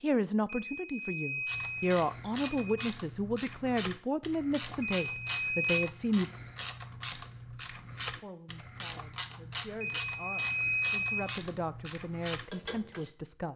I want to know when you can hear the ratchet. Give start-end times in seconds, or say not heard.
1.4-13.1.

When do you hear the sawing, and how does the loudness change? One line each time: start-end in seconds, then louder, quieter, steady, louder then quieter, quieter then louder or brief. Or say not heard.
not heard.